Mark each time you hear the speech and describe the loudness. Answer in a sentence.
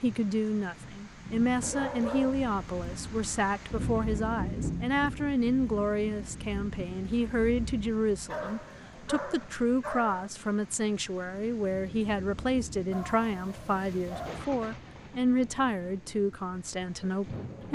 You can hear the speech from 0.0 to 17.7 s, at a steady volume.